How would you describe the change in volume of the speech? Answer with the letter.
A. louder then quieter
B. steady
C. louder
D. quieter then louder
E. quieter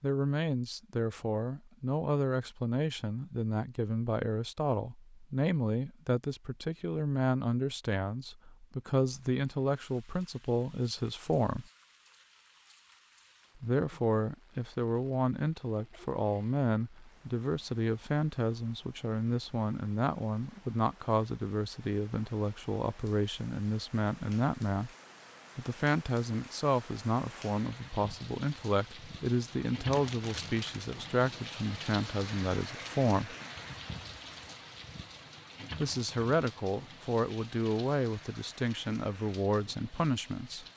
B.